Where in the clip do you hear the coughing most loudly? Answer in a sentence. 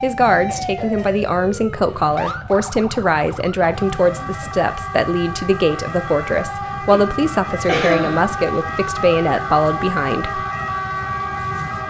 The volume of the coughing peaks at 8 seconds.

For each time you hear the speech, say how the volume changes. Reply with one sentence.
The speech can be heard from 0.0 to 10.4 s, at a steady volume.